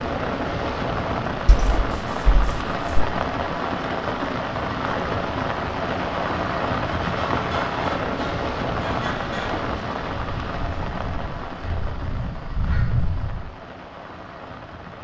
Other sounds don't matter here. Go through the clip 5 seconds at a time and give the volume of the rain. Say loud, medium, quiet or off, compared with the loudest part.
loud, loud, medium.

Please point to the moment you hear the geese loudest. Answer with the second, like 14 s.
13 s.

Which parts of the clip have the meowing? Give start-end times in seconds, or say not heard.
1.4-3.0.